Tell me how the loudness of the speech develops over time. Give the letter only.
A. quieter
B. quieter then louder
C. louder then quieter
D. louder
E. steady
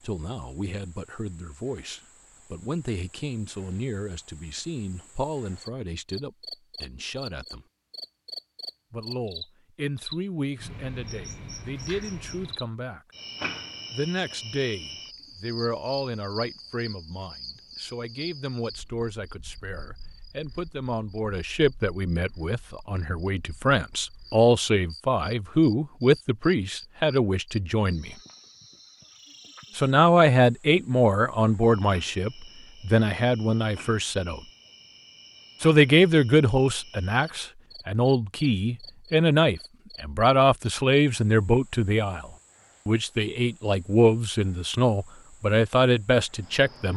D.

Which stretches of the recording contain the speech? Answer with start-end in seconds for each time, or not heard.
0.0-7.7, 8.9-13.0, 13.9-28.1, 29.8-34.4, 35.6-46.9.